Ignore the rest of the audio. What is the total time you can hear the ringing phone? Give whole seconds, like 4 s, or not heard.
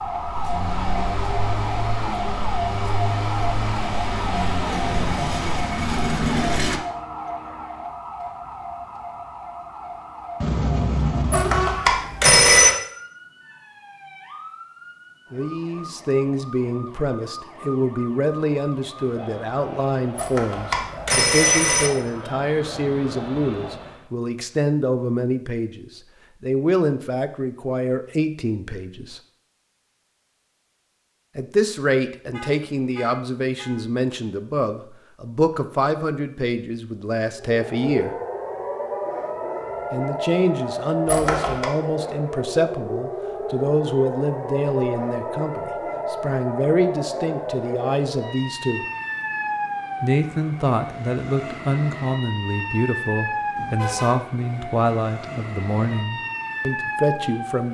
4 s.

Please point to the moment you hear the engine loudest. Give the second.
6 s.